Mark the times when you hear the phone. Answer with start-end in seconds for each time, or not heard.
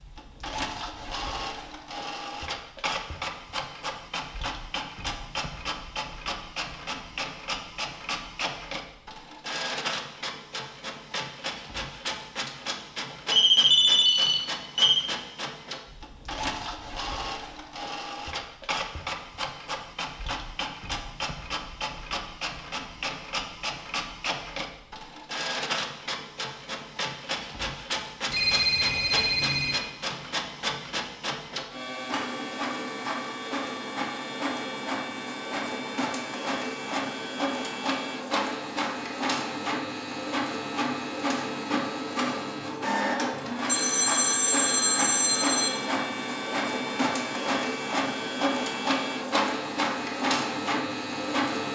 13.3-15.1, 28.3-29.8, 43.6-45.7.